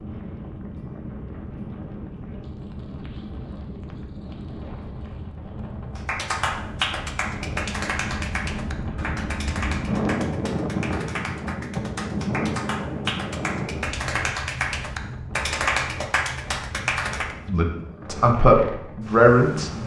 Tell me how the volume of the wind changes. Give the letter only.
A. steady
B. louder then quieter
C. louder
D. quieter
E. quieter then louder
B.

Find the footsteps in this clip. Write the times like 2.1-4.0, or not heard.
not heard.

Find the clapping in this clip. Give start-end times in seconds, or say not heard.
6.0-17.4.